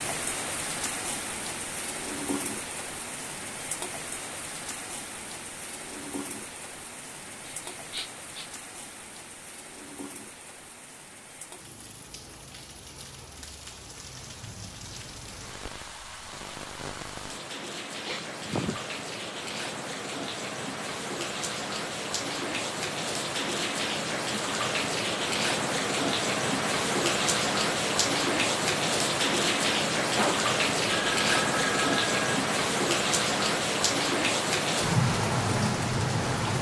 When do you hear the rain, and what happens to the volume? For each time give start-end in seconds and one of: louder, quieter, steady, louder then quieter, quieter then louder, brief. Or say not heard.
0.0-36.5 quieter then louder.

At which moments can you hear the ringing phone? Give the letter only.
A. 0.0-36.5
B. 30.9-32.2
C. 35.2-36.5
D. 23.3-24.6
B.